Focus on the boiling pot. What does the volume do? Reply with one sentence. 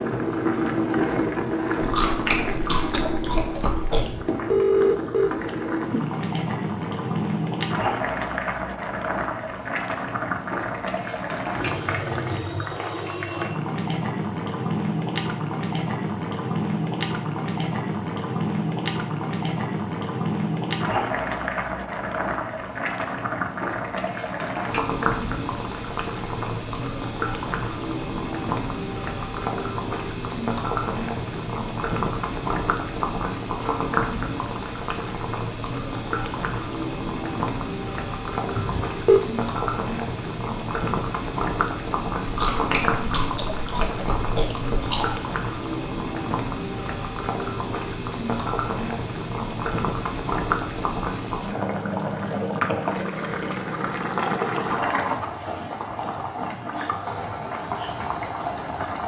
The volume of the boiling pot stays about the same.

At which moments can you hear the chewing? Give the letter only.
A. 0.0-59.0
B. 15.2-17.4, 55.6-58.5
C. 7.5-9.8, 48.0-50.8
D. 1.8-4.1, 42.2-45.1
D.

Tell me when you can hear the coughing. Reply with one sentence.
The coughing can't be heard in this clip.